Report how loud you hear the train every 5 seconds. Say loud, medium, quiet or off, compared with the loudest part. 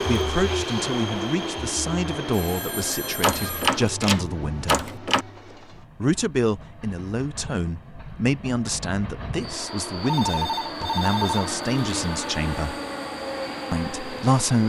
loud, medium, loud.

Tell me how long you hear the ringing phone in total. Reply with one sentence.
You can hear the ringing phone for 3 seconds altogether.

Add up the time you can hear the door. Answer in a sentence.
The door can be heard for 2 seconds in total.